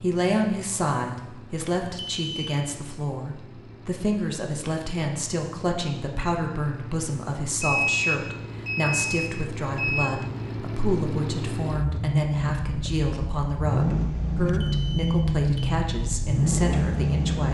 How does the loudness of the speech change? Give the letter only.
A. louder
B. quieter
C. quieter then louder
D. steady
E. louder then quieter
D.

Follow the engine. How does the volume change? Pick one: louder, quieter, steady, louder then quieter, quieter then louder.
louder.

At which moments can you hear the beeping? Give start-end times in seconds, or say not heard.
2.1-2.6, 7.6-10.1, 14.6-15.8.